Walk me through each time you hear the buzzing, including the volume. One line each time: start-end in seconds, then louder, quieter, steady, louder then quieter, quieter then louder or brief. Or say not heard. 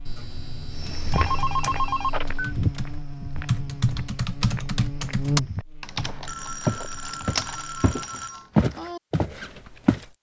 0.0-7.9 louder then quieter.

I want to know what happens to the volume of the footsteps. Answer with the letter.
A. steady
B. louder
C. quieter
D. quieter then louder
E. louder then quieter
D.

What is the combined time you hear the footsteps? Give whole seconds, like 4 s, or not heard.
9 s.